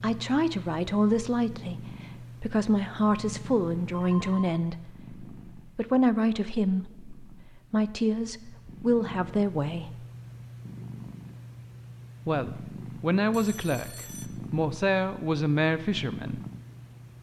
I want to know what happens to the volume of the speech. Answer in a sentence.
The loudness of the speech stays about the same.